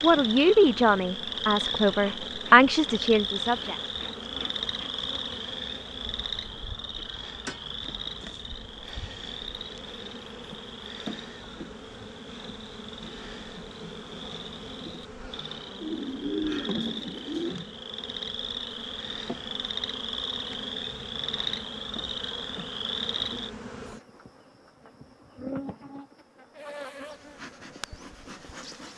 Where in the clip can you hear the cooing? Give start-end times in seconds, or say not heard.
15.8-17.6.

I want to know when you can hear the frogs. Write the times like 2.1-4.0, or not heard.
0.0-23.5.